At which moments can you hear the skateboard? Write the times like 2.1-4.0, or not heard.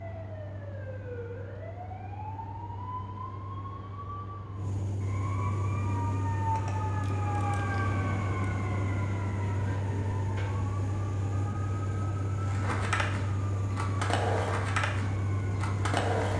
12.4-16.3.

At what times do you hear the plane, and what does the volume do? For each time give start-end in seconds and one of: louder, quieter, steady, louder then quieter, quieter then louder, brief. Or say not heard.
0.0-16.3 louder.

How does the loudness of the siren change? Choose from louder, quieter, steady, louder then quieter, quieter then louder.
louder then quieter.